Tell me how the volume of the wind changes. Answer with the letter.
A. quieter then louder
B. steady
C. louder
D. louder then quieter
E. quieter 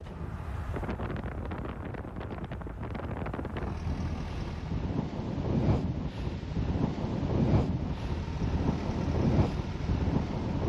C.